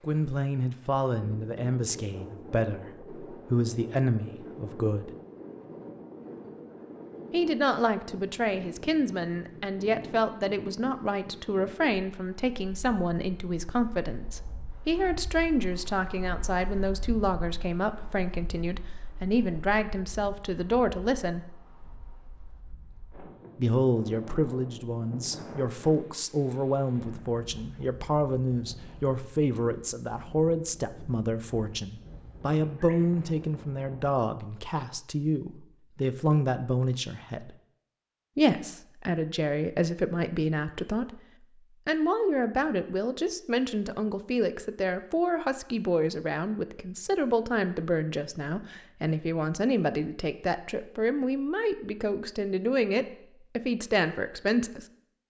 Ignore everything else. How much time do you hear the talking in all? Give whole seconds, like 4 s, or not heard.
49 s.